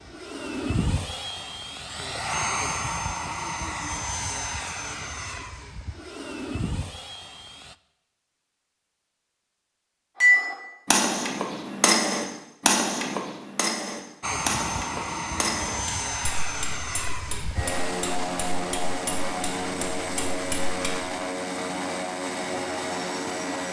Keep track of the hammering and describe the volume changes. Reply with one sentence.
The volume of the hammering goes down.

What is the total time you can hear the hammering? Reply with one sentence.
You can hear the hammering for 11 seconds altogether.